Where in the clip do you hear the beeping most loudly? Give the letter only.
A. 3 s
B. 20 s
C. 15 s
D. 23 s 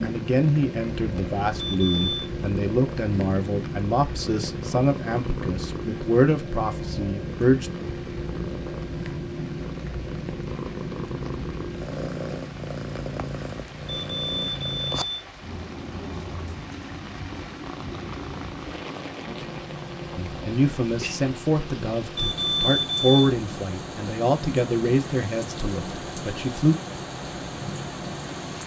D.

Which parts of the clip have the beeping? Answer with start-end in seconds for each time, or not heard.
1.6-2.3, 13.8-15.2, 22.1-23.3.